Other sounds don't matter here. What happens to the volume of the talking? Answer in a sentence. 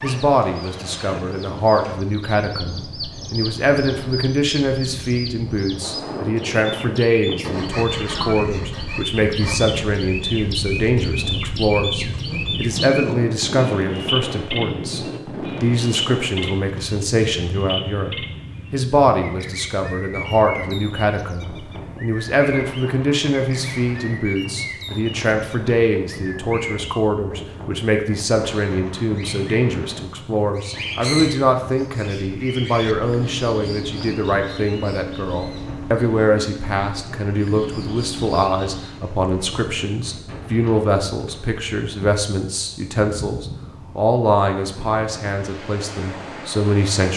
The loudness of the talking stays about the same.